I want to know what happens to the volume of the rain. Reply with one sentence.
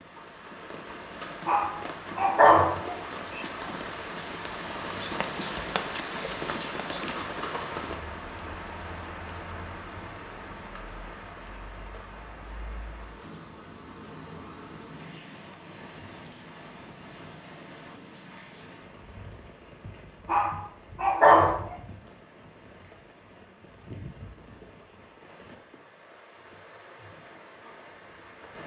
The volume of the rain goes down.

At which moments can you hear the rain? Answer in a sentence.
You can hear the rain from 0.0 to 28.6 s.